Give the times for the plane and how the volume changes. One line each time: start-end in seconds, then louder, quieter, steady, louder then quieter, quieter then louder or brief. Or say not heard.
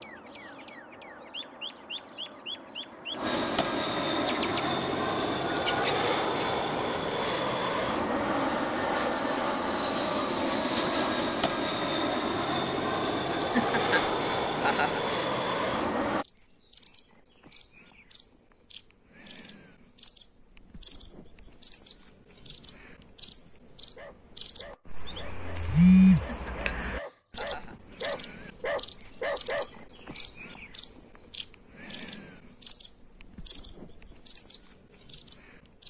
0.0-16.2 louder.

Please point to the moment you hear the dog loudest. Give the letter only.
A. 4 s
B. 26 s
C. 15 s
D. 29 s
D.